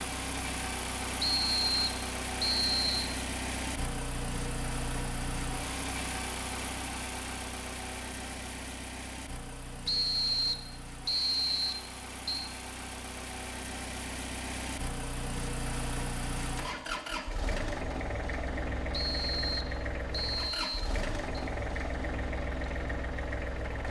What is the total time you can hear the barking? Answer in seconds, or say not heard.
not heard.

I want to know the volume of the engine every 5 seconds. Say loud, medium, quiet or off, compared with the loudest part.
loud, loud, medium, loud, loud.